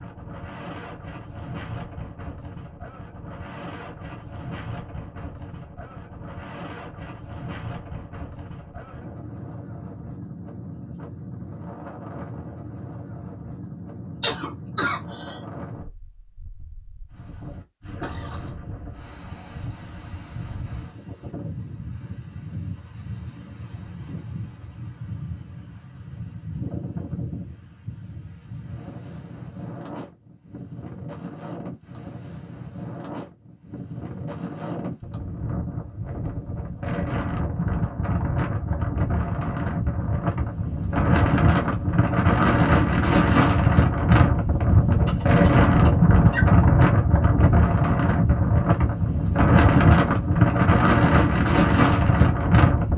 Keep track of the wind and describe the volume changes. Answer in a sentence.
The loudness of the wind goes up.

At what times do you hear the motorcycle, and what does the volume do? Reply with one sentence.
The motorcycle can't be heard in this clip.